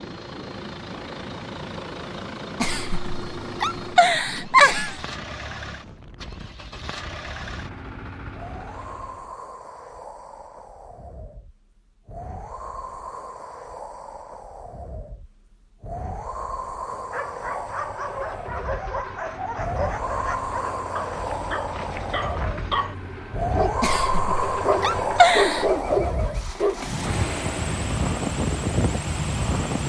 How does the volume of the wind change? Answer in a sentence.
The loudness of the wind goes up.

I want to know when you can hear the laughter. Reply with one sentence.
The laughter can be heard from 2.6 to 5.0 s and from 23.8 to 25.7 s.